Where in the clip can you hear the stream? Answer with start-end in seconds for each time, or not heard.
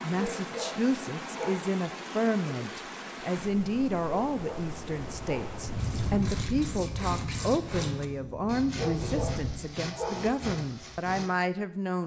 0.0-6.3.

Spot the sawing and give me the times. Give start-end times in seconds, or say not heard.
5.7-11.4.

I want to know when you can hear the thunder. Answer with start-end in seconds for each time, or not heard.
5.0-9.6.